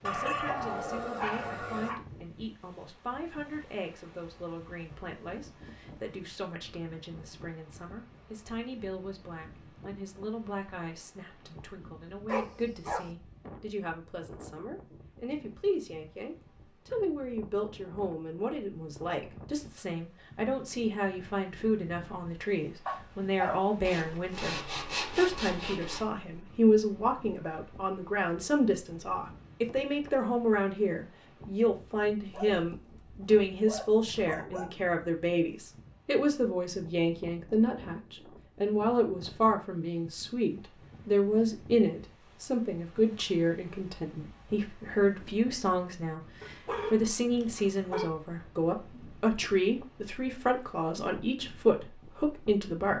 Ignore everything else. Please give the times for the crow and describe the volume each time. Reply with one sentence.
The crow can't be heard in this clip.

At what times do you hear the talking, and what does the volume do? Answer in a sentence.
The talking can be heard from 0.0 to 52.9 s, getting louder.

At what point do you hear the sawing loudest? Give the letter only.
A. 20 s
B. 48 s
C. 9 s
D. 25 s
D.